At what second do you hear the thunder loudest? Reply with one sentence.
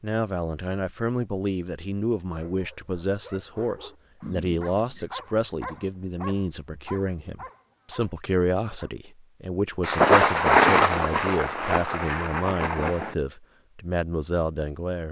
The volume of the thunder peaks at 11 seconds.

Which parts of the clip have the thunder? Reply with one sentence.
You can hear the thunder from 9.8 to 13.2 s.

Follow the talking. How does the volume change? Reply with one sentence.
The loudness of the talking stays about the same.